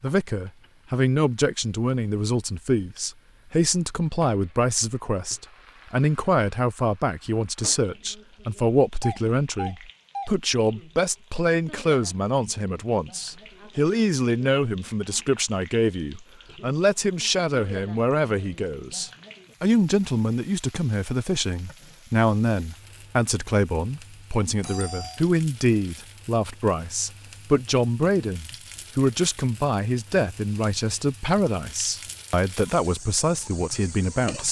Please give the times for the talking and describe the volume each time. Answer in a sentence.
The talking can be heard from 0.0 to 34.4 s, at a steady volume.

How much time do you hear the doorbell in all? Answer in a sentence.
You can hear the doorbell for 2 seconds altogether.